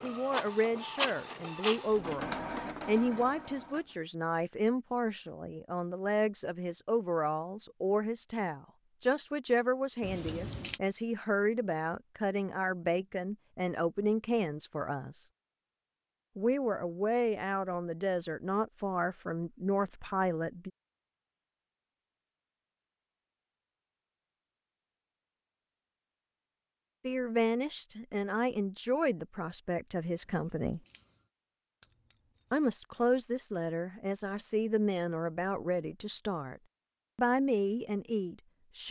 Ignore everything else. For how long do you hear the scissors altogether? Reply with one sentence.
The scissors can be heard for 2 seconds in total.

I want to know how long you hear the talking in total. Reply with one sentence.
The talking can be heard for 30 seconds in total.